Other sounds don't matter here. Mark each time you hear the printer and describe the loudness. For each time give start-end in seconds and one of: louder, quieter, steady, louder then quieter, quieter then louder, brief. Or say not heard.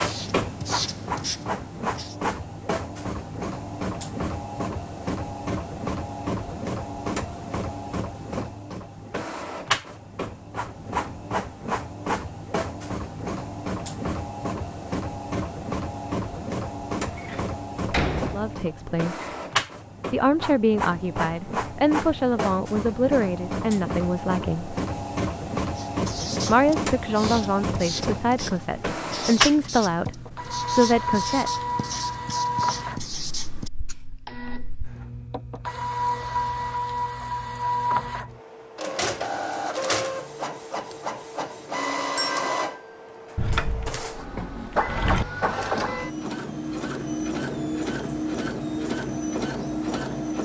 0.0-50.3 steady.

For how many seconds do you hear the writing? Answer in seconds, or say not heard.
10 s.